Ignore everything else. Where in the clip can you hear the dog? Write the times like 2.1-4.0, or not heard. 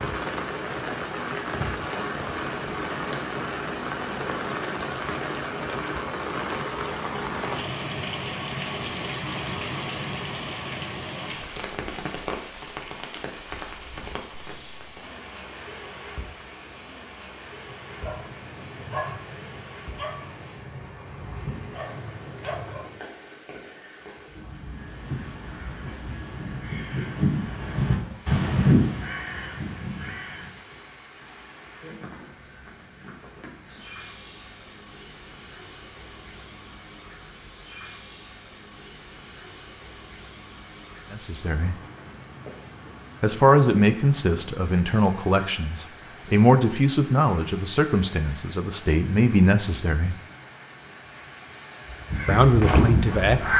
17.5-23.0.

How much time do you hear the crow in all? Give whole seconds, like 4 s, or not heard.
8 s.